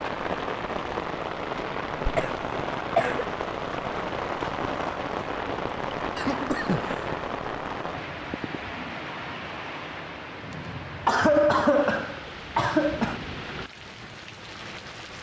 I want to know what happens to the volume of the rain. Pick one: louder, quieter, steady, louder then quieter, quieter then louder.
quieter.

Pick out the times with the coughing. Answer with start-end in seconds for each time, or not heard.
2.1-3.2, 6.2-7.0, 10.5-13.2.